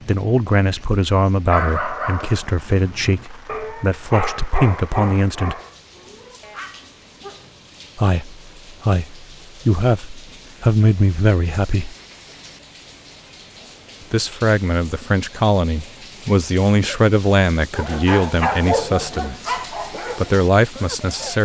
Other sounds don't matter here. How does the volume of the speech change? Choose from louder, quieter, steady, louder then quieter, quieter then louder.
steady.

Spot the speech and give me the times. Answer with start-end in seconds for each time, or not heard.
0.1-5.6, 8.0-11.9, 14.1-21.3.